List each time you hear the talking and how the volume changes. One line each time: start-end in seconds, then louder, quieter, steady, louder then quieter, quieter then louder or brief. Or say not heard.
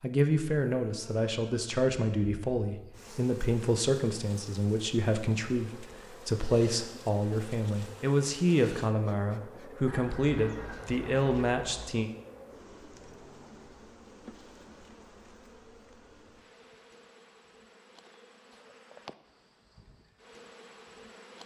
0.0-12.1 steady.